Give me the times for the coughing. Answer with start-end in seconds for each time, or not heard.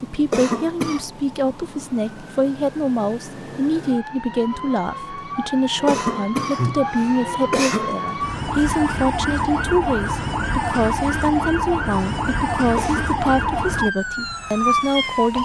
0.3-1.1, 5.8-8.0, 12.8-13.2.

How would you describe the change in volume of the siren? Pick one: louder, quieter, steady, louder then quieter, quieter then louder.
louder.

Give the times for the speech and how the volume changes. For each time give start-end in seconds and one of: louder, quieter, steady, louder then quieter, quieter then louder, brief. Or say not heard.
0.0-15.4 steady.